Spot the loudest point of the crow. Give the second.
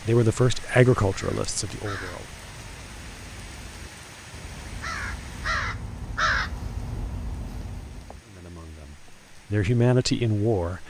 6 s.